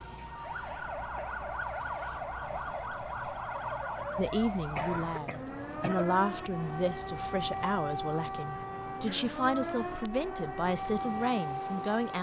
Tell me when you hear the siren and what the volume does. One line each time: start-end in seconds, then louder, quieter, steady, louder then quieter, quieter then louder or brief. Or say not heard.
0.0-12.1 steady.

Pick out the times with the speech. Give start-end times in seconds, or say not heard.
4.2-12.1.